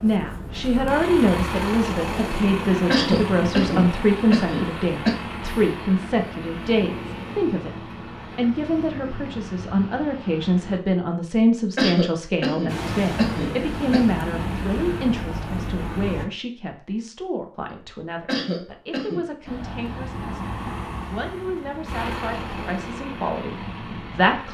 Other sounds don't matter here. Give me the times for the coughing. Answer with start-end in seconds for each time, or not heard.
2.9-5.2, 11.8-14.2, 18.2-19.2.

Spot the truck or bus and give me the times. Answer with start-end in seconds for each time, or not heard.
0.0-10.8, 12.7-16.2, 19.4-24.4.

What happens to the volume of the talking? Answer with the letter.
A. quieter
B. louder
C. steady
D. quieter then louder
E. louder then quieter
A.